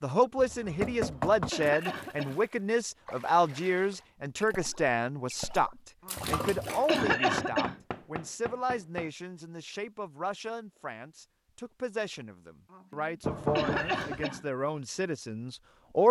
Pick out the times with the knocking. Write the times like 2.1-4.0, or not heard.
0.3-1.5, 7.1-9.1, 13.2-14.2.